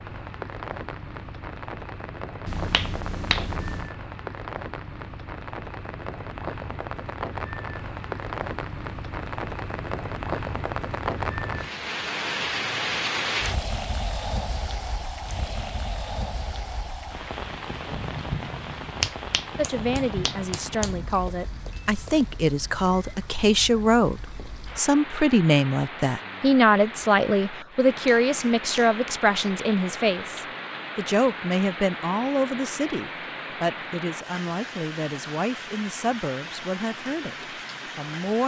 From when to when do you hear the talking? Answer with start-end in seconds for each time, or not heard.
19.6-38.4.